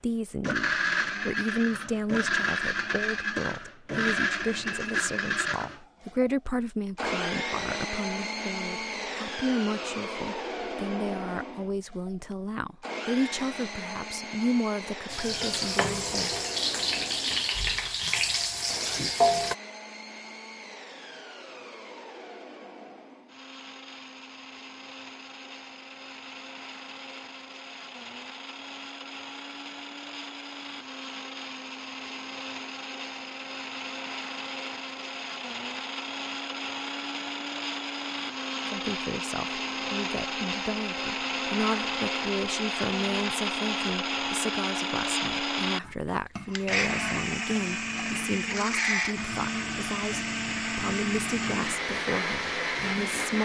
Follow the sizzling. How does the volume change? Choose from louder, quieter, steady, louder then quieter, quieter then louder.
steady.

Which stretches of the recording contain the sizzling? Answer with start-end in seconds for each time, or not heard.
15.1-19.6.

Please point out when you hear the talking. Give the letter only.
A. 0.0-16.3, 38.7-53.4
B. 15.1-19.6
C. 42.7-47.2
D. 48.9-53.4
A.